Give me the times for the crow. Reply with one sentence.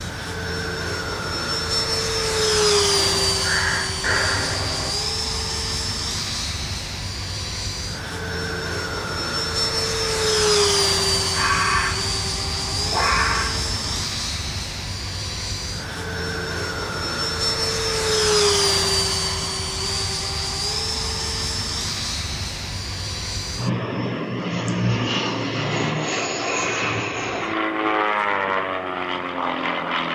The crow can be heard from 3.0 to 4.9 s and from 11.1 to 14.0 s.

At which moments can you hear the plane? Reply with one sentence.
You can hear the plane from 0.0 to 30.1 s.